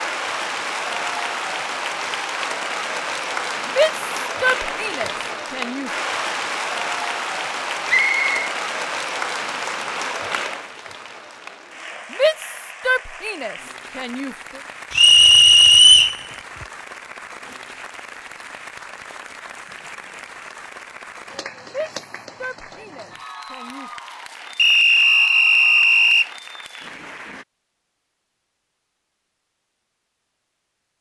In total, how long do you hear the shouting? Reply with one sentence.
The shouting can be heard for 7 seconds in total.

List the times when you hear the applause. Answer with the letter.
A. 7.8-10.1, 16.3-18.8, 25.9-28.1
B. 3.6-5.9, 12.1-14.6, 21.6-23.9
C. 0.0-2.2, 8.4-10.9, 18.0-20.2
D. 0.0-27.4
D.